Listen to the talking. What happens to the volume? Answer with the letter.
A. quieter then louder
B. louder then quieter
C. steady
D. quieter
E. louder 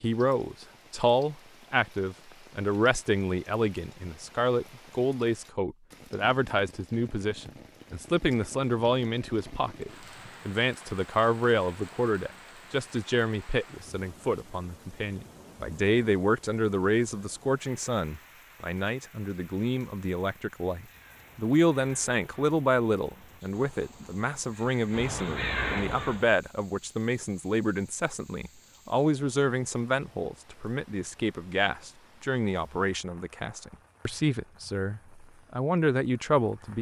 C.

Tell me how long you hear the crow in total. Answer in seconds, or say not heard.
6 s.